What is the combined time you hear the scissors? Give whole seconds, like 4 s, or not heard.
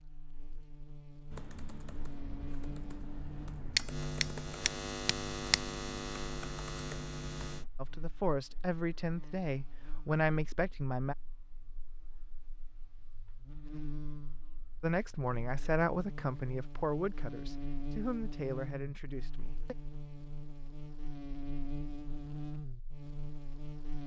2 s.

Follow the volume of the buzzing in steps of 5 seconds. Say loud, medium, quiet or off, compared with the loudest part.
loud, loud, medium, loud, loud.